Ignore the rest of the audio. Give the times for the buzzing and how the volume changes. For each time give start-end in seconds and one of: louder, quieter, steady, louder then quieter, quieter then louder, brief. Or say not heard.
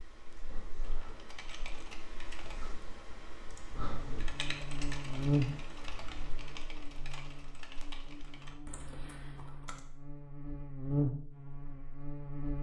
3.8-12.5 quieter then louder.